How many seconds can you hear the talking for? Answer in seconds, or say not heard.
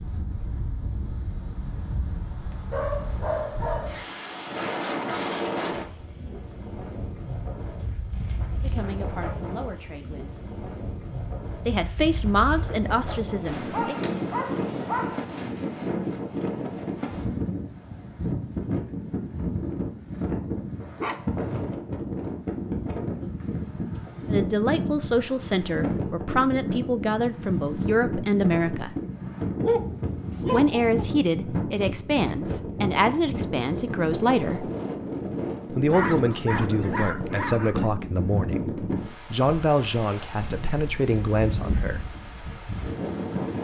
19 s.